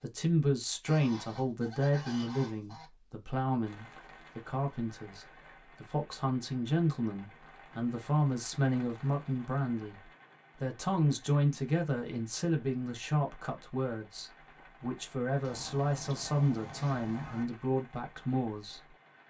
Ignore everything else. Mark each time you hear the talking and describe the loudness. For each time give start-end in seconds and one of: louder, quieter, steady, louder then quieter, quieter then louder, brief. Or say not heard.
0.0-19.2 steady.